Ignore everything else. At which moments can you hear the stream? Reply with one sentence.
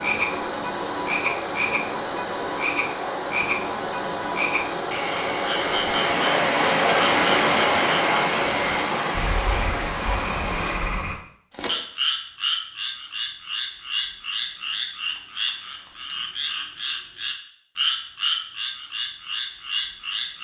You can hear the stream from 0.0 to 11.2 s.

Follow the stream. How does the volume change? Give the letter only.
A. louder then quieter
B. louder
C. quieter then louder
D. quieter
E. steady
A.